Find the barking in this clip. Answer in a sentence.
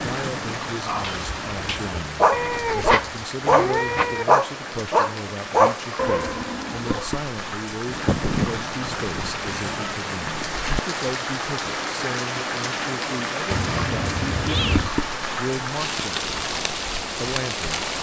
The barking can be heard from 0.8 to 7.0 s.